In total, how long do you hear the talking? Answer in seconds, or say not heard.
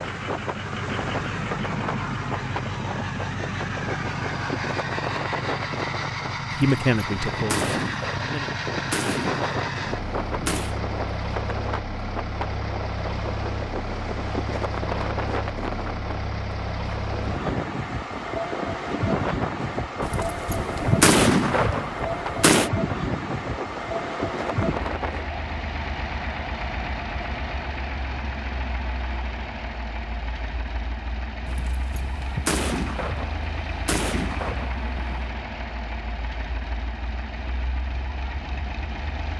2 s.